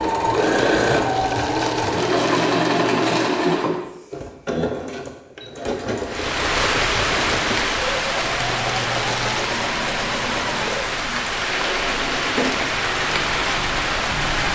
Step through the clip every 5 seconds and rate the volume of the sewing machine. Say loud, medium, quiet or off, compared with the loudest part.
loud, medium, medium.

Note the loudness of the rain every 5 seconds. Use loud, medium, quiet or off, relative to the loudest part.
off, loud, loud.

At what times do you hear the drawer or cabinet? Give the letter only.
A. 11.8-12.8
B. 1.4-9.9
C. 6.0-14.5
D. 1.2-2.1
A.